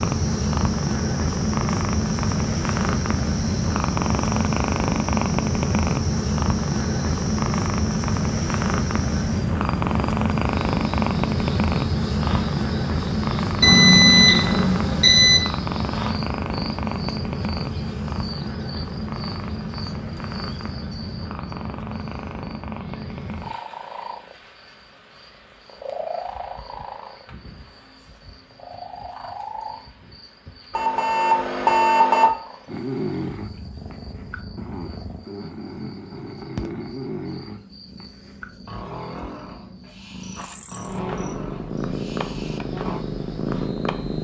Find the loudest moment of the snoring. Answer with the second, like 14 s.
33 s.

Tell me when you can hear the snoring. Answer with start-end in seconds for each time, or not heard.
32.6-43.0.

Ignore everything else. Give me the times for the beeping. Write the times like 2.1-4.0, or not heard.
13.6-15.4, 30.7-32.3.